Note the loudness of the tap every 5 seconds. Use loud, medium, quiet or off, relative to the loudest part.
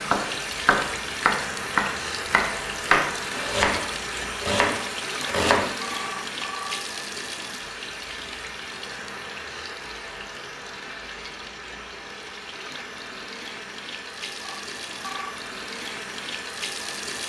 loud, loud, medium, loud.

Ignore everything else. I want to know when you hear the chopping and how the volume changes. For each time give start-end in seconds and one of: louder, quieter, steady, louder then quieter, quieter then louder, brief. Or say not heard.
0.0-5.7 steady.